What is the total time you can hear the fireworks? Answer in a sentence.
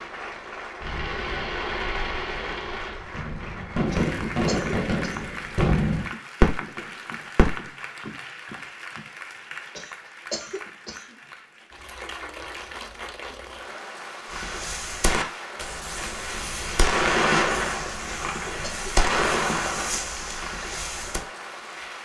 The fireworks can be heard for 14 seconds in total.